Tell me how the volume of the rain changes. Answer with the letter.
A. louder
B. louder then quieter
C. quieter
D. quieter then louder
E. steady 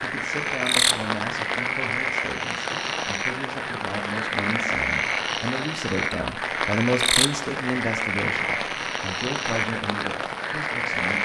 E.